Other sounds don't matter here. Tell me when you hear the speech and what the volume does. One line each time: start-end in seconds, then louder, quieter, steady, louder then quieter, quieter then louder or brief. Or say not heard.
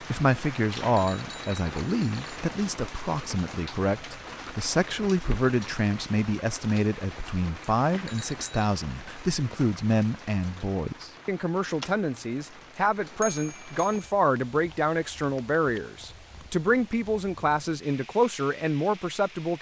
0.0-19.5 steady.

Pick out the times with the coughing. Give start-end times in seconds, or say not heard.
not heard.